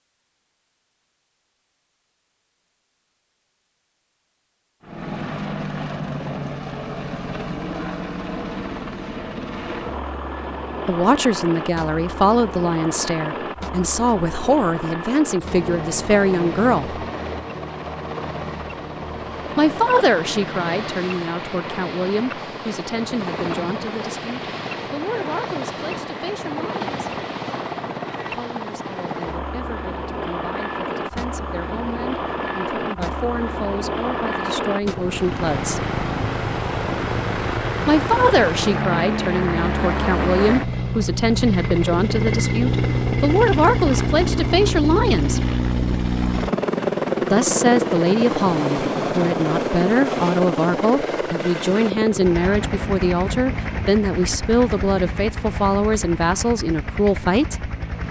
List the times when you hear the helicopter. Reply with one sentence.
You can hear the helicopter from 4.8 to 58.0 s.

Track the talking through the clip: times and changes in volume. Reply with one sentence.
You can hear the talking from 10.8 to 17.0 s, at a steady volume; from 19.6 to 27.1 s, getting quieter; from 28.2 to 35.8 s, getting louder; from 37.9 to 45.4 s, at a steady volume; and from 47.3 to 57.8 s, at a steady volume.